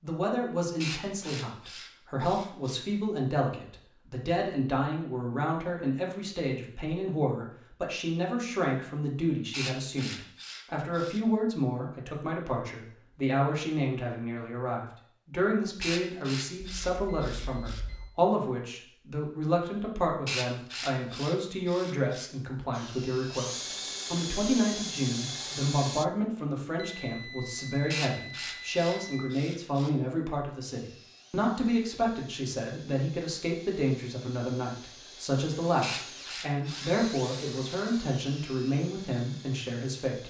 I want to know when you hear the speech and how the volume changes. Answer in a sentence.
The speech can be heard from 0.0 to 40.2 s, at a steady volume.